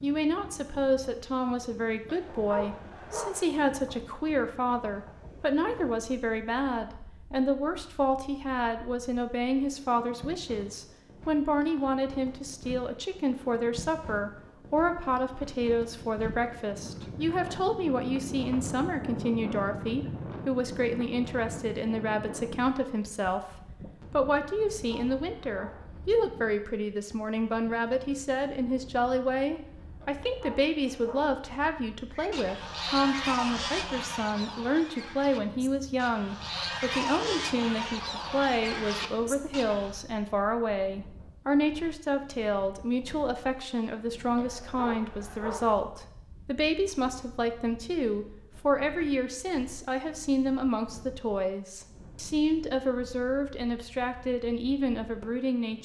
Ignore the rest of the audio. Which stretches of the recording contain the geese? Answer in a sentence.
You can hear the geese from 32.1 to 40.0 s.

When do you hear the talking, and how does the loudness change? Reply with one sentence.
The talking can be heard from 0.0 to 55.8 s, at a steady volume.